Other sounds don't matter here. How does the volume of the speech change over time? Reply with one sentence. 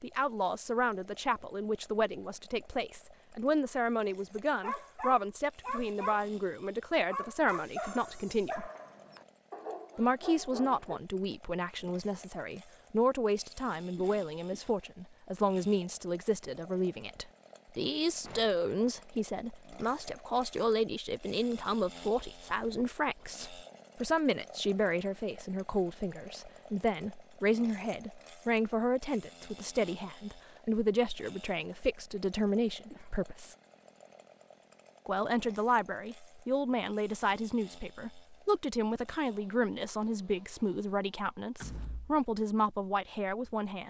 The loudness of the speech stays about the same.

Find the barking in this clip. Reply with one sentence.
The barking can be heard from 4.6 to 6.2 s and from 7.0 to 11.0 s.